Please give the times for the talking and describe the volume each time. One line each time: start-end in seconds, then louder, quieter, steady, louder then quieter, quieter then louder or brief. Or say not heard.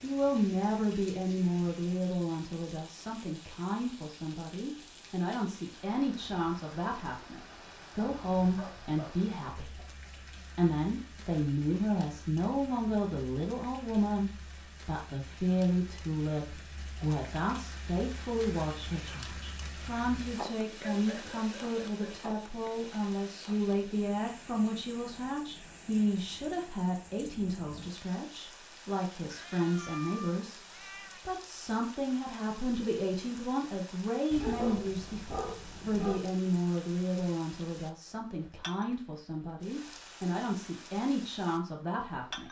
0.0-42.4 steady.